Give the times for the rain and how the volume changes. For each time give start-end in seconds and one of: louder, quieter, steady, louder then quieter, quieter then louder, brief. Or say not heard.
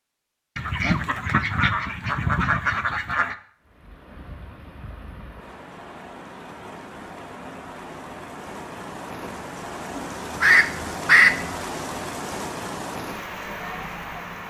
3.6-14.4 louder.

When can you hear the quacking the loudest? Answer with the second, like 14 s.
11 s.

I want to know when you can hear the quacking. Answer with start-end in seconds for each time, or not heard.
0.6-3.4, 9.9-11.6.